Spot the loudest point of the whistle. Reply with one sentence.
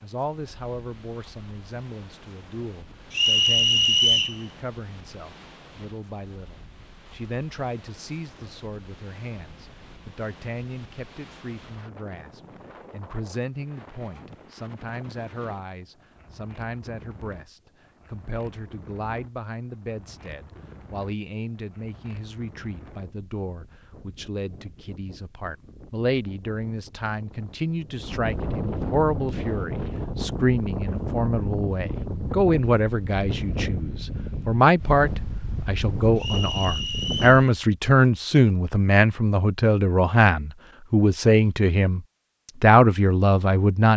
The loudest moment of the whistle is at 4 seconds.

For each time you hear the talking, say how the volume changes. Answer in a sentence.
The talking can be heard from 0.0 to 42.0 s, getting louder; and briefly from 42.6 to 43.9 s.